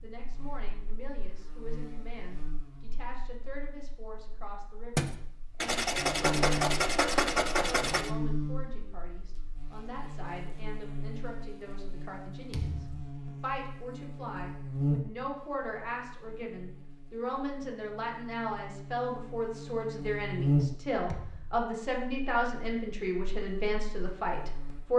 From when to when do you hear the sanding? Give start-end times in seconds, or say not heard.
5.6-8.1.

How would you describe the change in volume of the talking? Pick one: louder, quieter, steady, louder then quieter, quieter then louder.
louder.